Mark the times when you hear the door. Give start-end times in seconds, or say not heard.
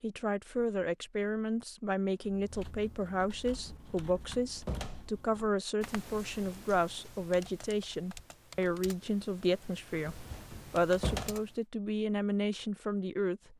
3.5-5.1, 9.9-11.3.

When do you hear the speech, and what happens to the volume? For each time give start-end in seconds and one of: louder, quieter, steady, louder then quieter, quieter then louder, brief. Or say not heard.
0.0-13.5 steady.